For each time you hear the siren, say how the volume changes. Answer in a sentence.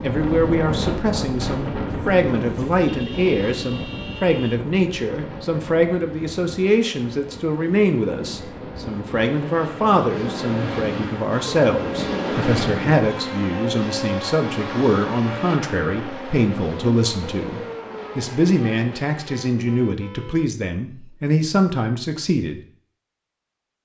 You can't hear the siren here.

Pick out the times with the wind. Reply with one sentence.
The wind can be heard from 0.0 to 13.1 s.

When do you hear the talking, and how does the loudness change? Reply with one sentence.
You can hear the talking from 0.0 to 22.6 s, at a steady volume.